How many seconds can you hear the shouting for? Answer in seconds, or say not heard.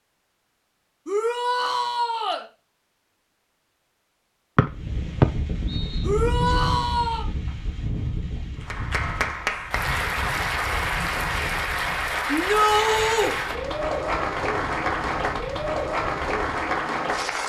4 s.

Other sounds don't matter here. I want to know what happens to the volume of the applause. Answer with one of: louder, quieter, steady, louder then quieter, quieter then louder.
steady.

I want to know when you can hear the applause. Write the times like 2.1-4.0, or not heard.
8.6-17.4.